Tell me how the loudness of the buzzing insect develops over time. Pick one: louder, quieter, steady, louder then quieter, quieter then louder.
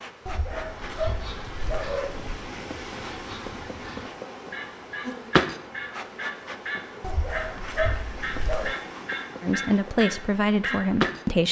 louder then quieter.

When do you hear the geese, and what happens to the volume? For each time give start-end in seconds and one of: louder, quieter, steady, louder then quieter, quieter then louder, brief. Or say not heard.
0.8-11.1 louder.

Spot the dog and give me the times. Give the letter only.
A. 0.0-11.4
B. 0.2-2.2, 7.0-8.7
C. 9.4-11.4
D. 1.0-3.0
B.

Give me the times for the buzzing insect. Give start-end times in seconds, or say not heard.
0.0-11.4.